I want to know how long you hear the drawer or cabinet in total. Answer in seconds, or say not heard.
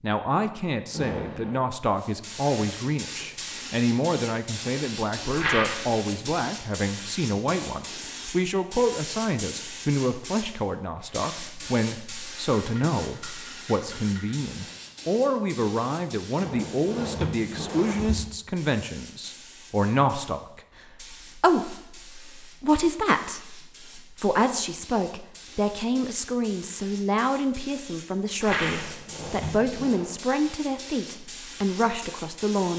4 s.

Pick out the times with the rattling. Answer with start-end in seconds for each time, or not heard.
5.3-5.8, 12.6-14.3, 28.4-28.9.